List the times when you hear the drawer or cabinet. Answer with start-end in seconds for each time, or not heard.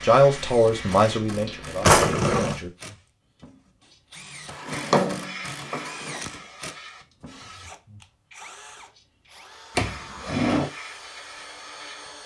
1.8-2.6, 4.5-6.2, 9.8-10.7.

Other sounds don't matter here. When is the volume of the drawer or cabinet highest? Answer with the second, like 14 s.
2 s.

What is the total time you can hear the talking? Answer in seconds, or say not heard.
3 s.